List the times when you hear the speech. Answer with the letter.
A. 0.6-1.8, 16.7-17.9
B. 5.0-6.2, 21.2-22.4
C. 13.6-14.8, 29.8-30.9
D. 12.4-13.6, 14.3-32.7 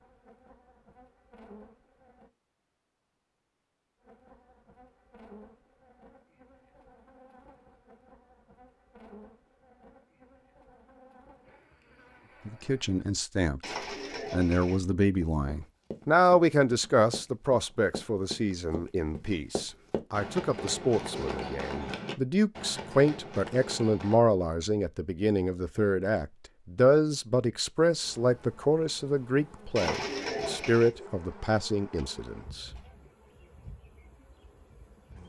D.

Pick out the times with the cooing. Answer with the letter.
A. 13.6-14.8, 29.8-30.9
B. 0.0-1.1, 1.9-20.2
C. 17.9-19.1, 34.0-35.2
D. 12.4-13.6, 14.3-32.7
A.